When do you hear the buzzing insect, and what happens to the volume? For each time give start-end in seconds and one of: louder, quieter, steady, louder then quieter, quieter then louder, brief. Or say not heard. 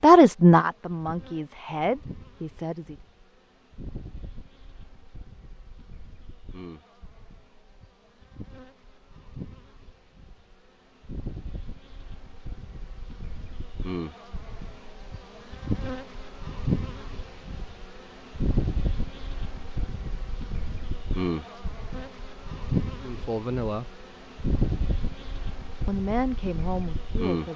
0.1-27.5 louder.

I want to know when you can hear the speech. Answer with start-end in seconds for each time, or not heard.
0.0-3.0, 23.0-23.9, 25.9-27.5.